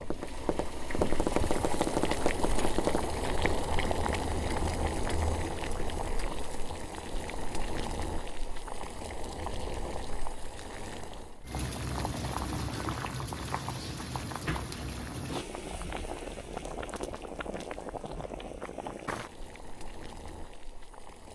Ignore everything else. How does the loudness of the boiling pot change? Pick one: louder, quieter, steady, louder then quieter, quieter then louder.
quieter.